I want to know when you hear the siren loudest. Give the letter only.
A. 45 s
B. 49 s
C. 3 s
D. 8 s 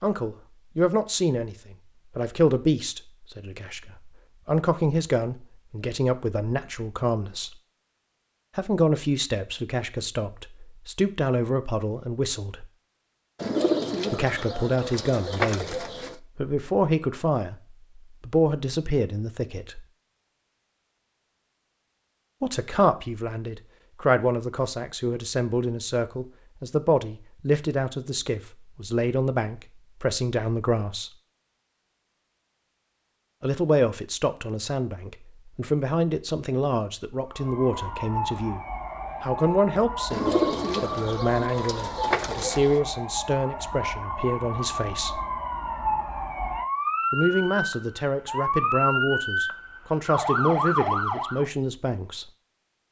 B.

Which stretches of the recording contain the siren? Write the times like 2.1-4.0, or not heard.
37.2-51.5.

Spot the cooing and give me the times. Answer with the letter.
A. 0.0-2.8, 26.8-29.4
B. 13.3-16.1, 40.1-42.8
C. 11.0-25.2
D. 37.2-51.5
B.